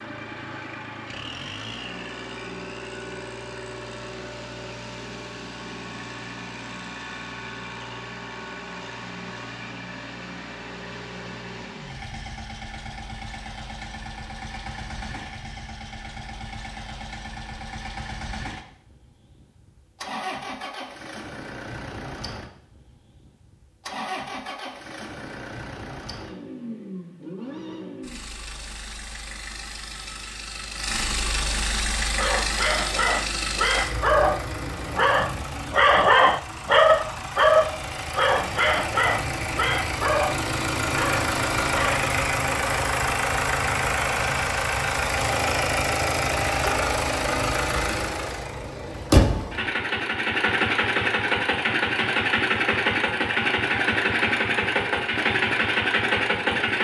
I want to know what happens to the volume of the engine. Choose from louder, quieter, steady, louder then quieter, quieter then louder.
louder.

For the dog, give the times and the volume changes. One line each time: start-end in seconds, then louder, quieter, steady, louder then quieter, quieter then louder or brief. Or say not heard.
32.1-42.0 louder then quieter.